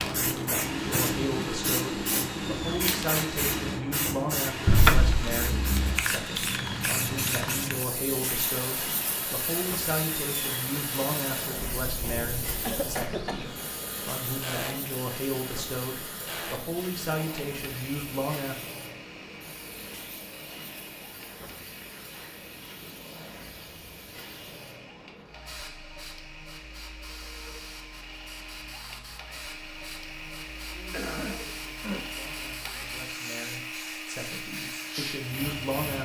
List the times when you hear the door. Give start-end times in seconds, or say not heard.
4.7-5.3.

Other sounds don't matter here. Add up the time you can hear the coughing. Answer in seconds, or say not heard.
3 s.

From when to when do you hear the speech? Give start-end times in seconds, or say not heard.
0.0-18.7, 30.6-36.0.